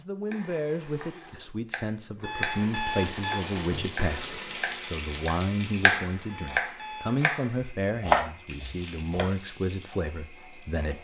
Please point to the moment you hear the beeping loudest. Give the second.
3 s.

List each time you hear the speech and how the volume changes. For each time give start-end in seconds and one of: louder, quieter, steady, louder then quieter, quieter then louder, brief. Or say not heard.
0.0-10.9 steady.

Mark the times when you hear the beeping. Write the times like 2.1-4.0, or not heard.
2.2-3.5, 6.2-7.2.